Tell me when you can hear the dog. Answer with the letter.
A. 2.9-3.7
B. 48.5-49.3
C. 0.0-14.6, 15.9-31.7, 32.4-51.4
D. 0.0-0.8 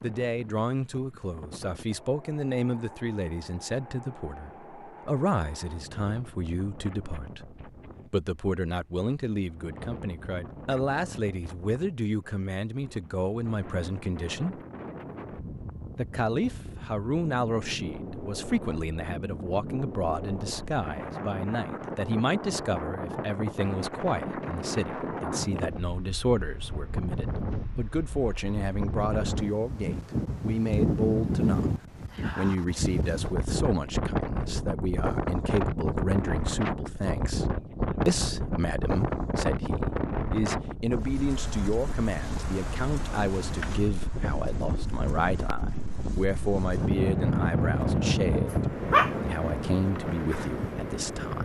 B.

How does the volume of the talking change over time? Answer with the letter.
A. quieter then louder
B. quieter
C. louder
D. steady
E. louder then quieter
D.